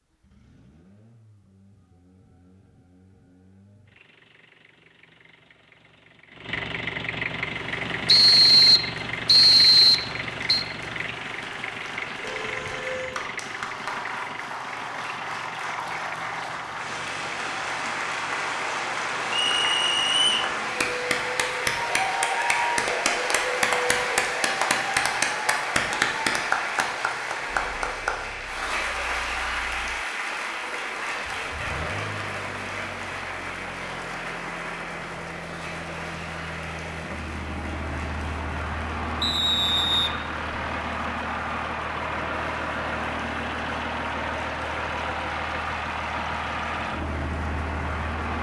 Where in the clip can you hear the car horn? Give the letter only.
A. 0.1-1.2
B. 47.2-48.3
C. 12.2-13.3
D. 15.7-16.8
C.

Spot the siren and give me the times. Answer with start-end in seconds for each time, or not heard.
not heard.